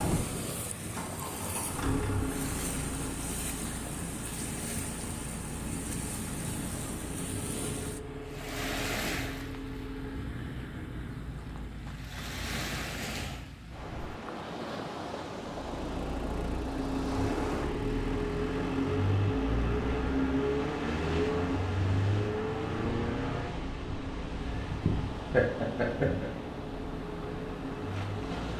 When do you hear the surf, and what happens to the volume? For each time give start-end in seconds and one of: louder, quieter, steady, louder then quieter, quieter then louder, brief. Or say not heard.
0.0-28.5 steady.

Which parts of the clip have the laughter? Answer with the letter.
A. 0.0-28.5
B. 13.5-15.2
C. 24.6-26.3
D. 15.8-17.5
C.